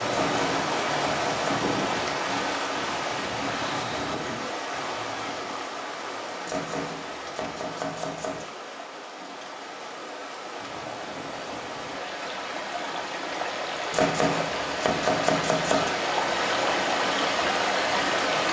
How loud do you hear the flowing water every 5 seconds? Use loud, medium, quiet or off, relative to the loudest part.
loud, medium, medium, loud.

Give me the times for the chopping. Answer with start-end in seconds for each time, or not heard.
0.1-1.7, 6.5-8.4, 13.9-15.9.